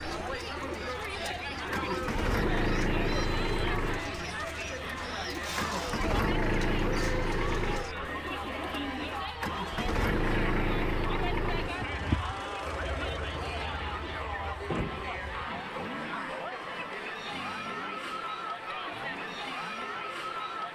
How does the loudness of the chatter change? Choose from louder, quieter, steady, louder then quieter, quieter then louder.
steady.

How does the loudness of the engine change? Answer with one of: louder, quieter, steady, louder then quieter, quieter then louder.
quieter.